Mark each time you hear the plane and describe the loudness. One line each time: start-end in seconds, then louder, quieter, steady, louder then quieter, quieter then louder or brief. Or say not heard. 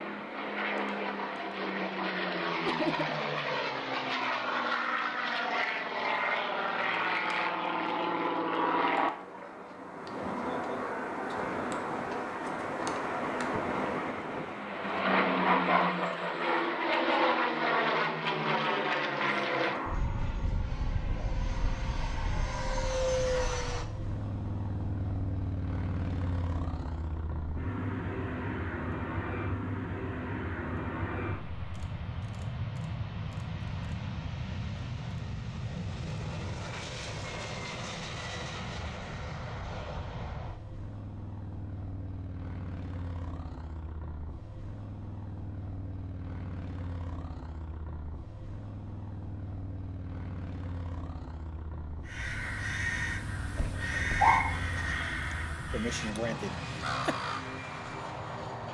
0.0-58.7 quieter.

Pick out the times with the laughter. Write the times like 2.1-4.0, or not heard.
2.6-3.1, 55.7-57.1.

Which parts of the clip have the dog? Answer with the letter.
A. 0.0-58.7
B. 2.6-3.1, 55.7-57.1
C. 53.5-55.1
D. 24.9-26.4
C.